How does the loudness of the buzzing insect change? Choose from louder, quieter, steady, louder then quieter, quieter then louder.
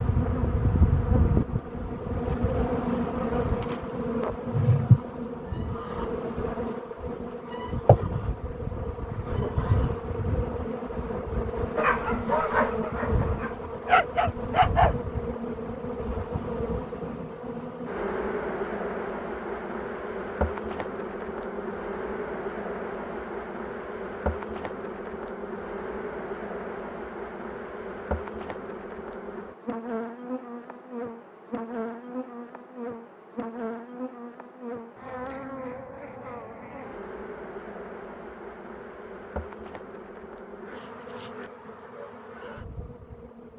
quieter.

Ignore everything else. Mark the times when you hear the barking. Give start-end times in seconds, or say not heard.
11.8-14.9.